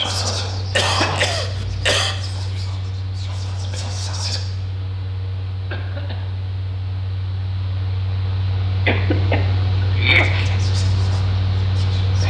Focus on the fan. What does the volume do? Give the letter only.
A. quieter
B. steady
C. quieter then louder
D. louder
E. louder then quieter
D.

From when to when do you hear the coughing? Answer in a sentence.
You can hear the coughing from 0.7 to 2.1 s, from 5.7 to 6.4 s and from 8.8 to 10.2 s.